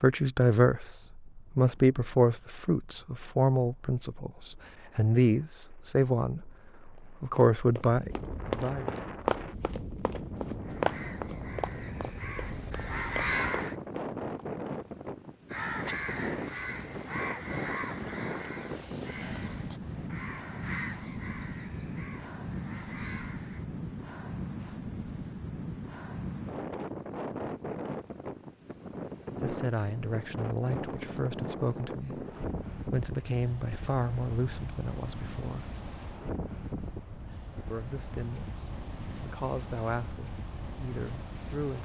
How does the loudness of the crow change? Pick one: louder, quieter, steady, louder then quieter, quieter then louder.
louder then quieter.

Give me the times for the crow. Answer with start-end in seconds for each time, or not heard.
10.6-13.8, 15.5-23.6.